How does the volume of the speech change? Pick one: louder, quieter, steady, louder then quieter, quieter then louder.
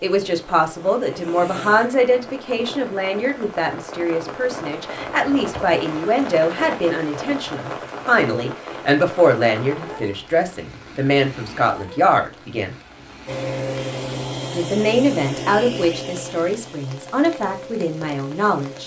steady.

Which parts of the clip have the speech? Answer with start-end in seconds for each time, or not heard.
0.0-12.8, 14.5-18.8.